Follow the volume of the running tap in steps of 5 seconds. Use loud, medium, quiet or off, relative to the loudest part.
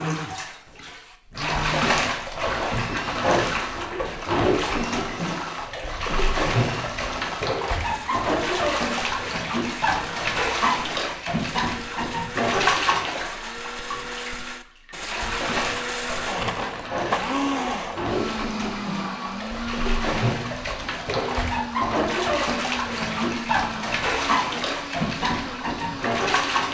loud, loud, loud, medium, loud, loud.